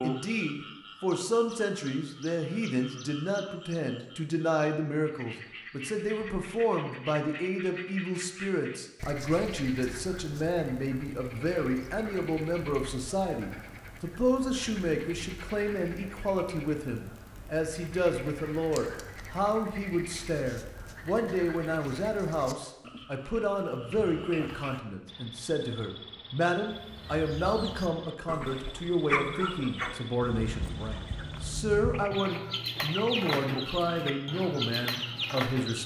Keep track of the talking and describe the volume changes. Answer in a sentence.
The loudness of the talking stays about the same.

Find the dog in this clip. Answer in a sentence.
The dog can't be heard in this clip.